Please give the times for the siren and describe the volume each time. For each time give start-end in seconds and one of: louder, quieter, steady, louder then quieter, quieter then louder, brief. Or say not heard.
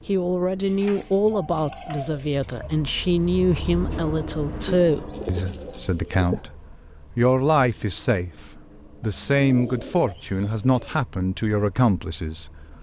not heard.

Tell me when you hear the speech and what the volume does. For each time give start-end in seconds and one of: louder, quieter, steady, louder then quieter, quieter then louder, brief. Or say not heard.
0.1-12.5 steady.